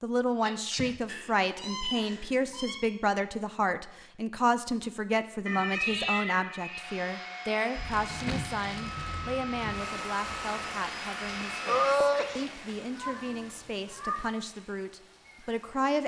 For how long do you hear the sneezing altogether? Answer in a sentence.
The sneezing can be heard for 2 seconds in total.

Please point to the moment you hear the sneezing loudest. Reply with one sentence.
The volume of the sneezing peaks at 12 seconds.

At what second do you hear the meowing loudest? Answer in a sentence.
The volume of the meowing peaks at 6 seconds.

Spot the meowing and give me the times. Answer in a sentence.
You can hear the meowing from 1.1 to 2.8 s, from 5.5 to 6.8 s and from 12.9 to 14.3 s.